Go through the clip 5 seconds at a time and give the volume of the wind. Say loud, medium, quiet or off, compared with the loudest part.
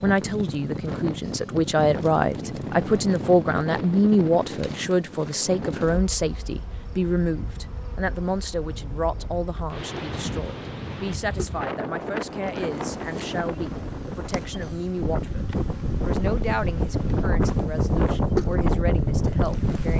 medium, quiet, medium, loud.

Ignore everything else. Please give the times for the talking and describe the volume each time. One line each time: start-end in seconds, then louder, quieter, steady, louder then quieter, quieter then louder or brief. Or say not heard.
0.0-19.9 quieter.